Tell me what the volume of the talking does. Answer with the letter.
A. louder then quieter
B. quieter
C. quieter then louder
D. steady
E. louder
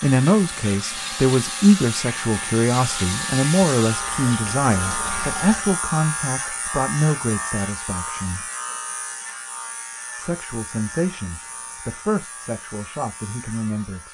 B.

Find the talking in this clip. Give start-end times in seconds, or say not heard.
0.0-8.5, 10.2-14.0.